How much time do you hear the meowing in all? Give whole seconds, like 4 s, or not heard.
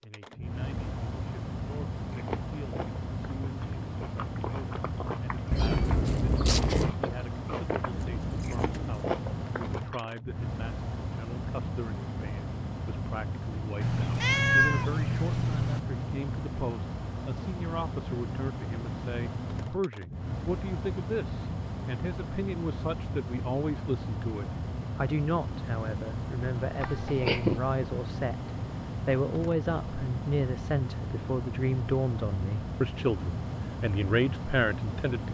4 s.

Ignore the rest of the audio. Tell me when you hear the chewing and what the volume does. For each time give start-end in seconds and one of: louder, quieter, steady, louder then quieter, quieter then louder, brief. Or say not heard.
2.1-10.1 louder.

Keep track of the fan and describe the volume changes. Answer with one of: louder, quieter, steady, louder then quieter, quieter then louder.
steady.